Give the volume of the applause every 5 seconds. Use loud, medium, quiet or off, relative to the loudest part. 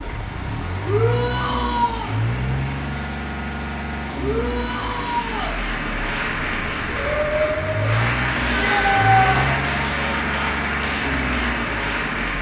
quiet, loud, loud.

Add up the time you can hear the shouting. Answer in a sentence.
You can hear the shouting for 4 seconds altogether.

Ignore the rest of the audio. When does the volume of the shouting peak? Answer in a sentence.
The loudest moment of the shouting is at 9 seconds.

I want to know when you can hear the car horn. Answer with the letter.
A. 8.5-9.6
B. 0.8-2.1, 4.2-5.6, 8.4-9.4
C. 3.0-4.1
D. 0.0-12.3
A.